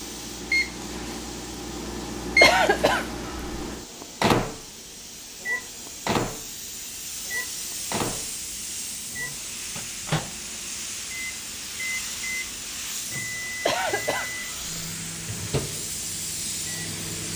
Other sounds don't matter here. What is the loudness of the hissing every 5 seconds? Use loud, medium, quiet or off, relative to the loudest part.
medium, loud, loud, loud.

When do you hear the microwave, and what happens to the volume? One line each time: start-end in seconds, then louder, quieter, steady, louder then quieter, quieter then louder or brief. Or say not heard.
0.0-17.3 quieter.